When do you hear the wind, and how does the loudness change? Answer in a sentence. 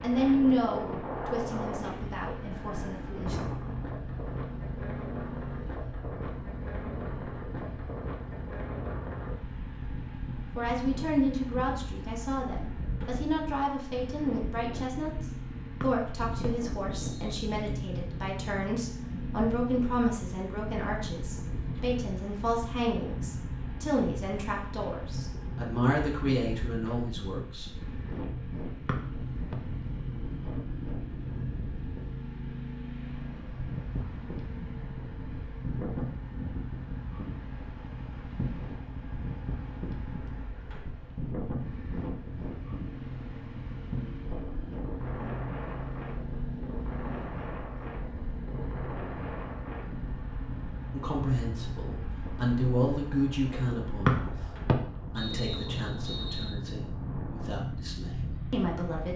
The wind can be heard from 0.0 to 59.1 s, at a steady volume.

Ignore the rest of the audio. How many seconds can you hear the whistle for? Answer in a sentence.
The whistle can be heard for 5 seconds in total.